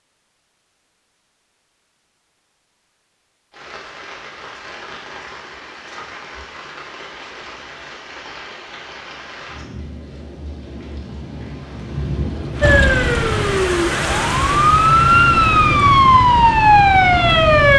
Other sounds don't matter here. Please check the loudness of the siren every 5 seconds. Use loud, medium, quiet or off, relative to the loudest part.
off, off, medium, loud.